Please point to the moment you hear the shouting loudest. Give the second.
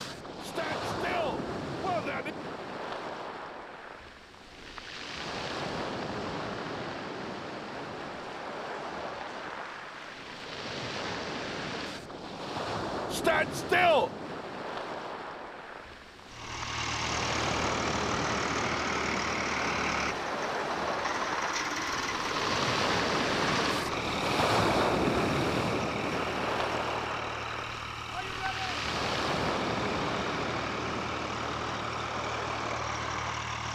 14 s.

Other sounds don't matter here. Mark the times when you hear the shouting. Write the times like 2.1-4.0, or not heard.
0.4-2.4, 13.1-14.1, 28.1-28.6.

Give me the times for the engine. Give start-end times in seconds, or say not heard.
16.2-33.7.